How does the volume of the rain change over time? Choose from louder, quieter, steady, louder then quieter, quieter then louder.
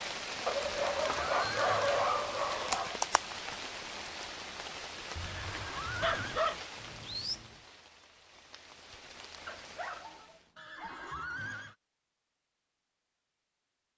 quieter.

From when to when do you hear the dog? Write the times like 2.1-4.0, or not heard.
0.5-3.0, 5.2-7.5, 9.4-11.1.